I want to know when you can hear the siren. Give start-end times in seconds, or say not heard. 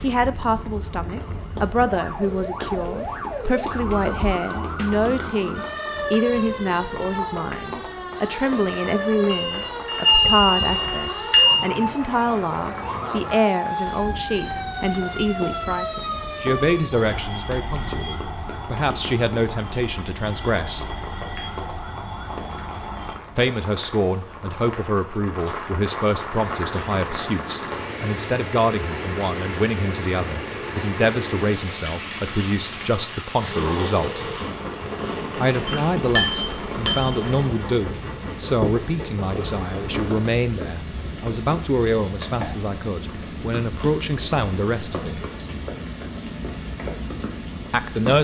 0.0-23.2.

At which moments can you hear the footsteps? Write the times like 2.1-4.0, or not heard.
not heard.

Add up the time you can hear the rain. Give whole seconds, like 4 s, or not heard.
48 s.